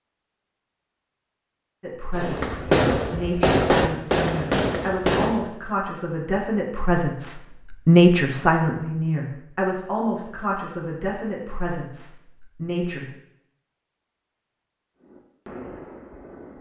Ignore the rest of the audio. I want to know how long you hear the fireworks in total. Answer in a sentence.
You can hear the fireworks for 5 seconds altogether.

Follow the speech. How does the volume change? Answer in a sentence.
The volume of the speech goes up, then down.